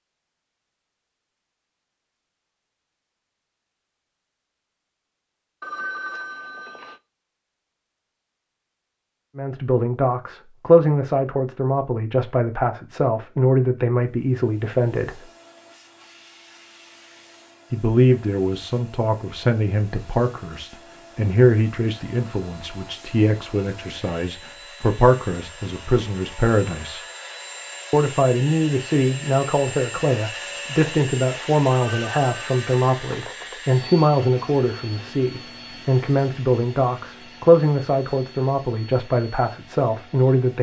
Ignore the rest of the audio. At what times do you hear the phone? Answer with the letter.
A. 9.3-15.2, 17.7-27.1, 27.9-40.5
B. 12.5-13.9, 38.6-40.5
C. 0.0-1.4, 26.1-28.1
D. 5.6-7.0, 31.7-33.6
D.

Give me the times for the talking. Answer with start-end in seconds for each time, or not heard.
9.3-15.2, 17.7-27.1, 27.9-40.5.